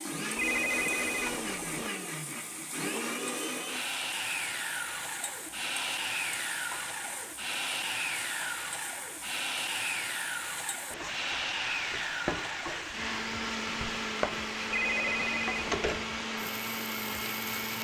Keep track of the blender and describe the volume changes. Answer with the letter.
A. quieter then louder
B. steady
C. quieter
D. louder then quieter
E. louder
B.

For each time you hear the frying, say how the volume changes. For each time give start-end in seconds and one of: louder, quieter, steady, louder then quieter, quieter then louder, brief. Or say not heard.
0.0-17.7 louder.